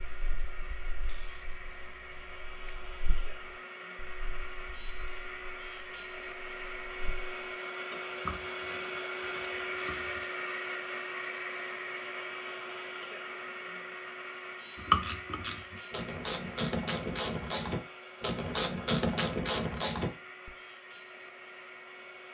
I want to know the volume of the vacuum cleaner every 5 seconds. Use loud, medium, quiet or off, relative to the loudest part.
medium, loud, loud, medium, medium.